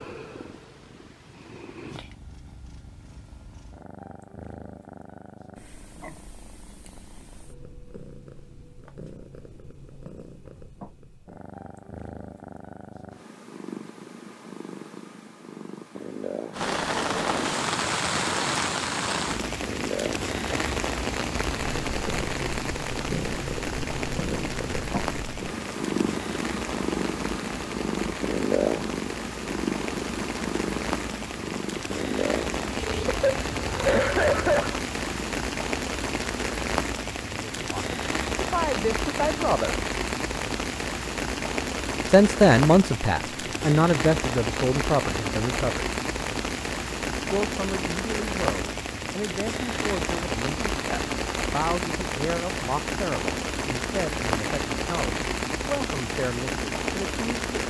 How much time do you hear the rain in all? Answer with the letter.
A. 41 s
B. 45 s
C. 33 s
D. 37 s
A.